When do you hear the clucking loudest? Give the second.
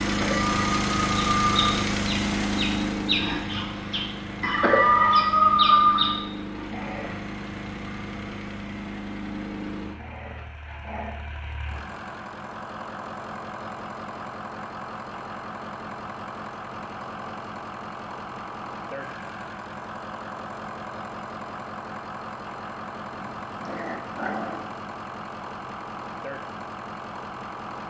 6 s.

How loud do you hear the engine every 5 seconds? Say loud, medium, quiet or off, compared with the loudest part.
loud, medium, medium, medium, medium, medium.